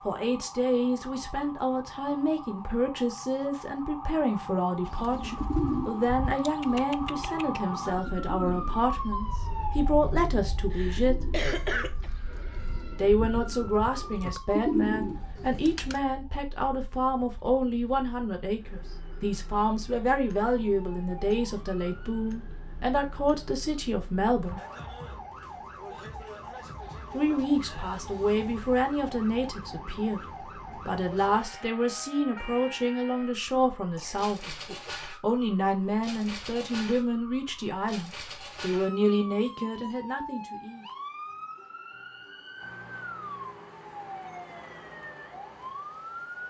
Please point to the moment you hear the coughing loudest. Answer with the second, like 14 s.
12 s.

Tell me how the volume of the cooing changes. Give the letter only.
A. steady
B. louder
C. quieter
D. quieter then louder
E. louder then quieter
D.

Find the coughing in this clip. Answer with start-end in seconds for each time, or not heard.
10.7-12.1, 34.0-35.0.